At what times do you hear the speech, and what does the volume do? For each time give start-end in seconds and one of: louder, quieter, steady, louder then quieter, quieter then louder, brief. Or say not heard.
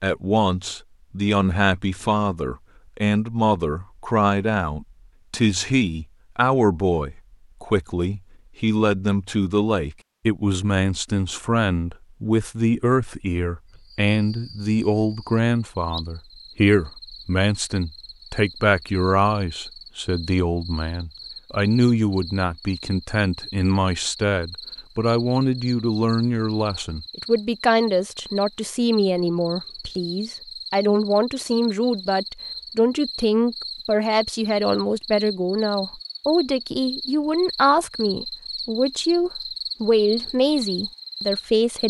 0.0-41.8 steady.